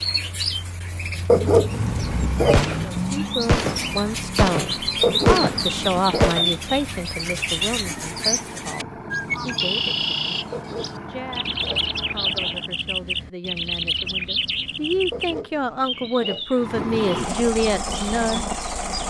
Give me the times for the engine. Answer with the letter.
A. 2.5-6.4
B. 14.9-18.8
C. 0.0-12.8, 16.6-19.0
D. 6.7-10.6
C.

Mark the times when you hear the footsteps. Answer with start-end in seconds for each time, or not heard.
not heard.